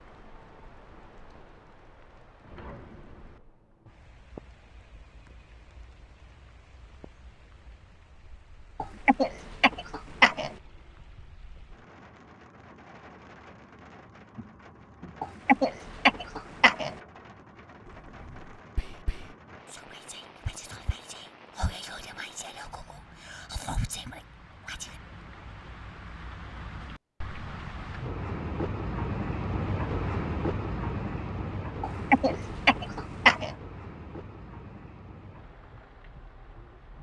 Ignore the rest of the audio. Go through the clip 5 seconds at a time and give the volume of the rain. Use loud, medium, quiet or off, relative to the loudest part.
quiet, quiet, quiet, quiet, quiet, loud, loud, quiet.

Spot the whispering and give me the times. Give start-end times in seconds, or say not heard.
17.9-25.0.